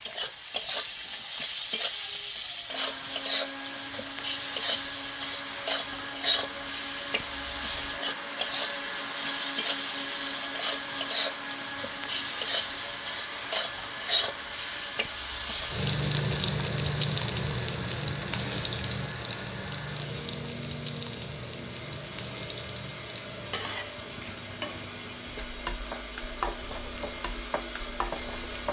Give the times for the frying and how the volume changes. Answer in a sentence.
You can hear the frying from 0.0 to 28.6 s, getting quieter.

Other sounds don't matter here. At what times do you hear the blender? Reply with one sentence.
The blender can be heard from 2.6 to 28.6 s.